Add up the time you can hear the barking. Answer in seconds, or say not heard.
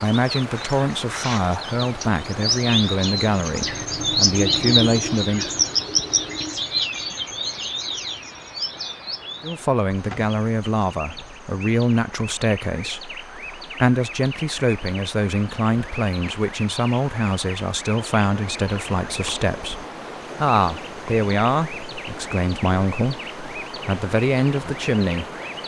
not heard.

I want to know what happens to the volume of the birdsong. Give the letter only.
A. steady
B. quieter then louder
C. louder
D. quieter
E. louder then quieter
D.